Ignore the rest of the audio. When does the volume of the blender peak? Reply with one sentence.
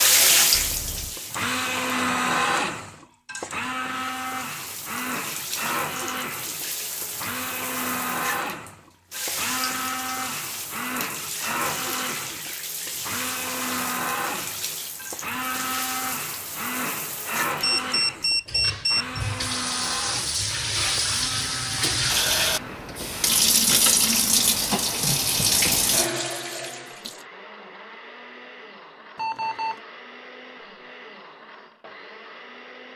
The loudest moment of the blender is at 2 seconds.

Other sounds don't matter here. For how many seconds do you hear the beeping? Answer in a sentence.
You can hear the beeping for 3 seconds altogether.